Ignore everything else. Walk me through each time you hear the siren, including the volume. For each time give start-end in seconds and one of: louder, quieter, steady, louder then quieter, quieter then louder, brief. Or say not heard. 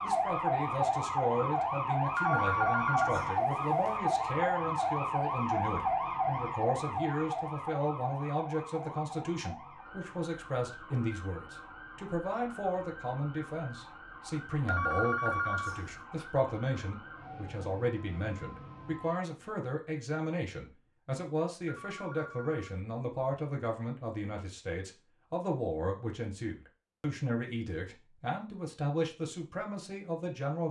0.0-19.2 quieter.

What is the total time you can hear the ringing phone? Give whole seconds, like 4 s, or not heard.
4 s.